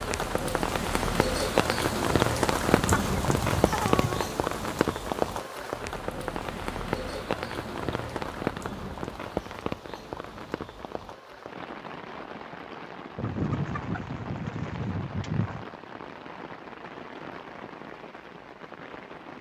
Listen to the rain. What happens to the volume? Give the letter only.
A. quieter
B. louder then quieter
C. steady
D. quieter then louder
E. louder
A.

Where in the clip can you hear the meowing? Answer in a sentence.
You can't hear the meowing here.